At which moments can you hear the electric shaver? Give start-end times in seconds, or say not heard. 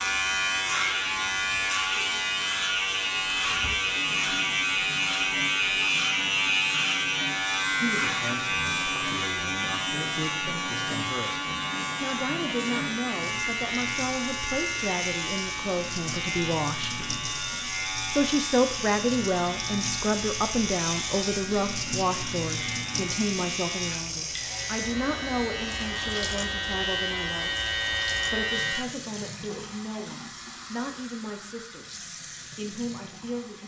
0.0-28.9.